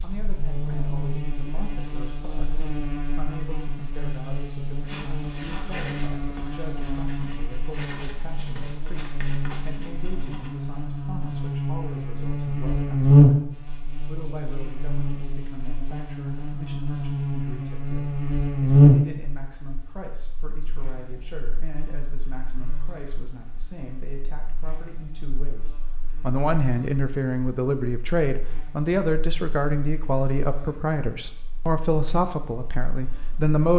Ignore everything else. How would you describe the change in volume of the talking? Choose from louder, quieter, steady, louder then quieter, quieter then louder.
louder.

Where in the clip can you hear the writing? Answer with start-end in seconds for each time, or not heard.
4.8-10.6.